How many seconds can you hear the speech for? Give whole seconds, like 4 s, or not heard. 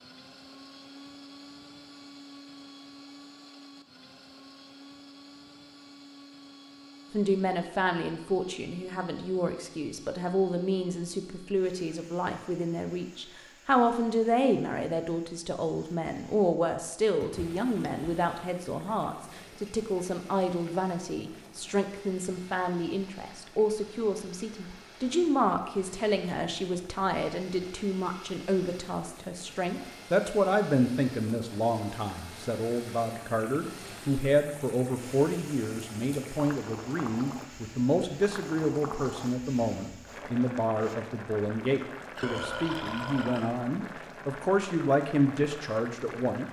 39 s.